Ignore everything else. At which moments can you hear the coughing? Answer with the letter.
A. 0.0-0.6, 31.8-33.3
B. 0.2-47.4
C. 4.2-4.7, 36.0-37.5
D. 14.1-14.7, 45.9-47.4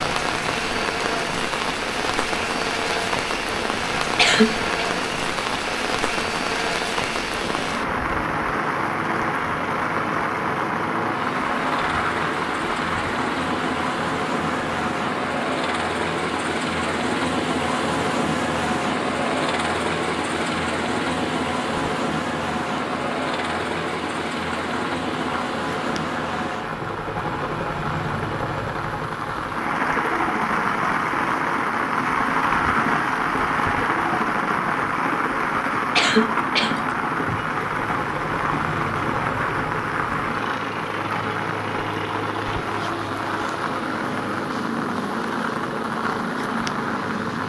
C.